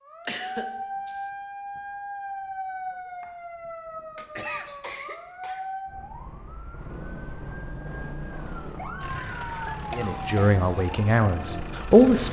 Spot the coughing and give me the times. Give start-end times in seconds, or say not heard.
0.2-1.1, 4.2-5.7, 9.2-10.6.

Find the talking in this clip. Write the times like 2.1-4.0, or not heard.
9.9-12.2.